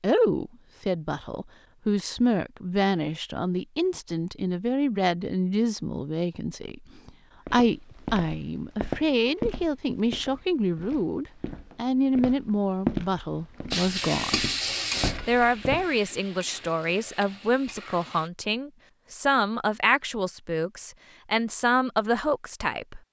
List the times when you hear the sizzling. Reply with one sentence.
The sizzling can be heard from 13.7 to 18.3 s.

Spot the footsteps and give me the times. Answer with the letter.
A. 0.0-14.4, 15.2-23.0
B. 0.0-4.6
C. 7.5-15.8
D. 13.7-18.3
C.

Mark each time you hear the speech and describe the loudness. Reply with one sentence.
You can hear the speech from 0.0 to 14.4 s, at a steady volume; and from 15.2 to 23.0 s, at a steady volume.